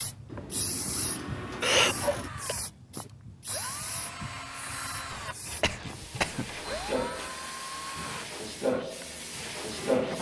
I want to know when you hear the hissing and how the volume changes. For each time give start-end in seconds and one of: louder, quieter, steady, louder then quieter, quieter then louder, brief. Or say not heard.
0.0-10.1 quieter then louder.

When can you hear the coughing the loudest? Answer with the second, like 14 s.
2 s.